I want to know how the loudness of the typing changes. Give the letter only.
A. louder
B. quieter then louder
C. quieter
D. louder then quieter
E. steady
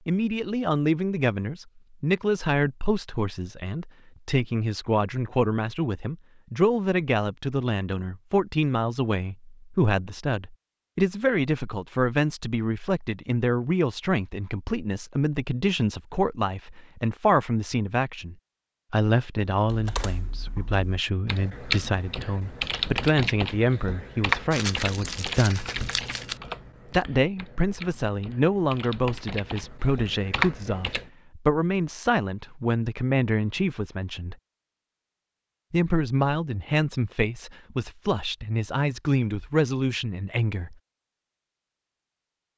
B.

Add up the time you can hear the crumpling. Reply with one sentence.
You can hear the crumpling for 2 seconds altogether.